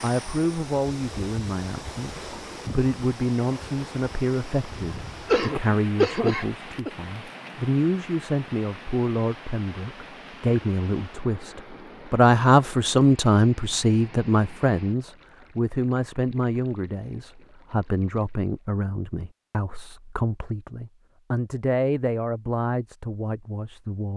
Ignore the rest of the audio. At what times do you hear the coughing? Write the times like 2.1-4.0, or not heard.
5.2-6.9.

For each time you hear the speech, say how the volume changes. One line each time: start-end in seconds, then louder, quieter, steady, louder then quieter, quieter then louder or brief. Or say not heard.
0.0-24.1 louder then quieter.